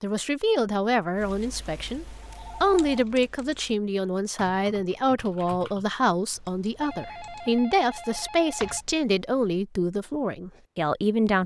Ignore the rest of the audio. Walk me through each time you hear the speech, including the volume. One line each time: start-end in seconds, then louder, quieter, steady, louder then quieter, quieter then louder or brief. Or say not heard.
0.0-11.4 steady.